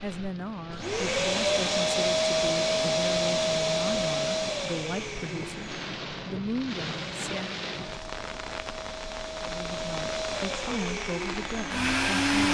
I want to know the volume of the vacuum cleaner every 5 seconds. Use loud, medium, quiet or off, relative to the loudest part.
loud, quiet, loud.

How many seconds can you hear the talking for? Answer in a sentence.
The talking can be heard for 11 seconds in total.